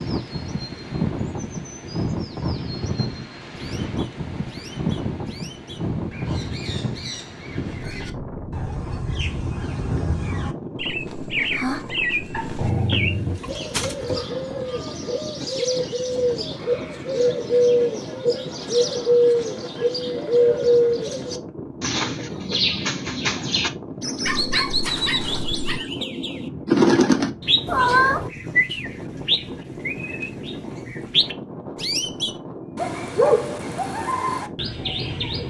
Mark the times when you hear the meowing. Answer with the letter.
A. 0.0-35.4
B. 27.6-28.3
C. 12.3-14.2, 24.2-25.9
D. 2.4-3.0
B.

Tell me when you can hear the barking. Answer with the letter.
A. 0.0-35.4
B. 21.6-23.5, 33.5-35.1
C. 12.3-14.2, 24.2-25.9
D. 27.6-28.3
C.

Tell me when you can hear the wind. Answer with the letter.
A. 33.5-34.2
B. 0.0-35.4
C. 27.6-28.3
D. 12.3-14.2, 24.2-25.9
B.